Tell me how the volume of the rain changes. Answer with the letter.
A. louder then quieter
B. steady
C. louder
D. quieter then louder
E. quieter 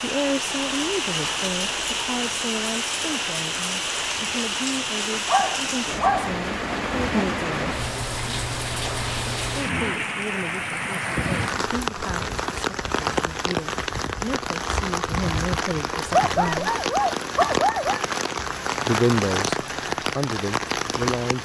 B.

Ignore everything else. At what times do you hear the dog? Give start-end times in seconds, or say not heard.
5.2-6.3, 16.1-18.1.